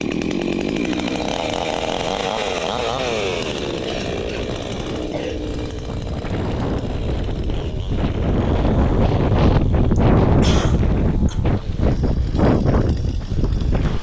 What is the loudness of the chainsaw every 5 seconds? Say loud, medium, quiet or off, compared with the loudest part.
loud, medium, quiet.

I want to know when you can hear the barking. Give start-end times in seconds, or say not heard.
not heard.